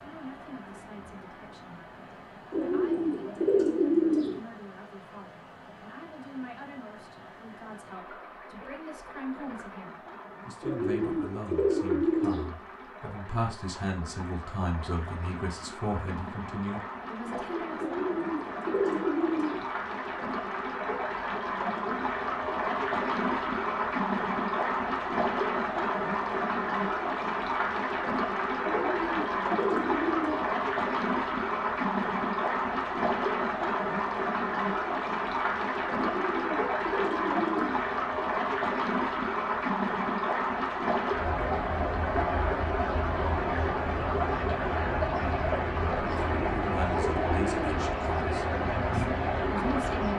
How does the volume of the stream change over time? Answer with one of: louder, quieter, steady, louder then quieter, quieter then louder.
louder.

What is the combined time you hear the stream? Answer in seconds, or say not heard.
50 s.